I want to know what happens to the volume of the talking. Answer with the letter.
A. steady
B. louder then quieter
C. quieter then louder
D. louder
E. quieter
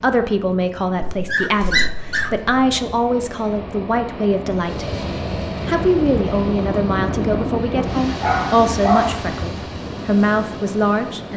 A.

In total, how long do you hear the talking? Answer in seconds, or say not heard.
11 s.